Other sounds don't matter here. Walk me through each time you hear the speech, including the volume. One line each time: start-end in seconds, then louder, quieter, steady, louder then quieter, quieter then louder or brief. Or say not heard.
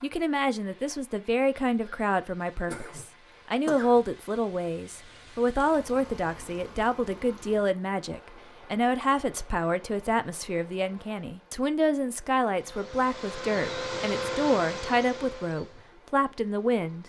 0.0-17.0 steady.